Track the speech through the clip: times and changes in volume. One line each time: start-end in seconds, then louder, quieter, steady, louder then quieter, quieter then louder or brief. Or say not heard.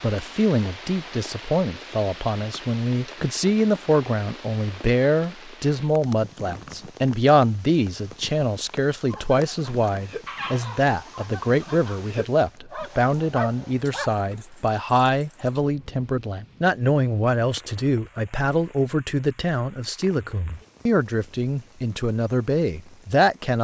0.0-23.5 steady.